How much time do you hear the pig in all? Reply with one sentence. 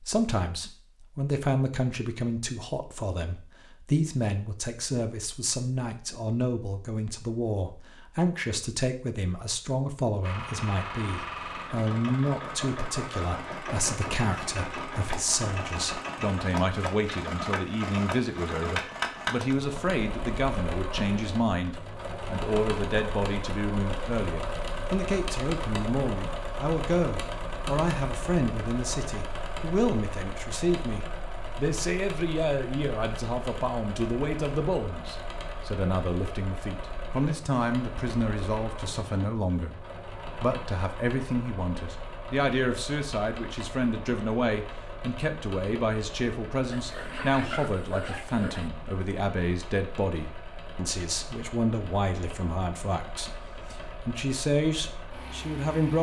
The pig can be heard for 2 seconds in total.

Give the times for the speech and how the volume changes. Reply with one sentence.
You can hear the speech from 0.0 to 55.9 s, at a steady volume.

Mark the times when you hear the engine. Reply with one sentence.
You can hear the engine from 10.2 to 55.9 s.